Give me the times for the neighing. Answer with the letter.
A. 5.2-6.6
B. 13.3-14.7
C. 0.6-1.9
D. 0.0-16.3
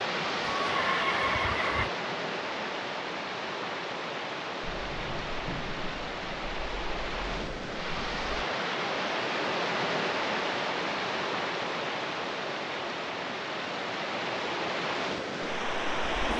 C.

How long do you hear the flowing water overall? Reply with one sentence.
The flowing water can be heard for 16 seconds in total.